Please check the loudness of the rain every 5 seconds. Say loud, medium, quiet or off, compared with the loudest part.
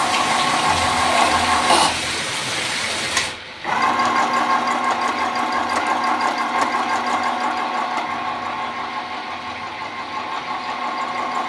loud, medium, medium.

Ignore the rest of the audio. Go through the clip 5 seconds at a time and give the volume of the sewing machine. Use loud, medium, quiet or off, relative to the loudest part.
loud, loud, medium.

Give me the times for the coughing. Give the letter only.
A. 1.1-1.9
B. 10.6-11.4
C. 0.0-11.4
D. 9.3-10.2
A.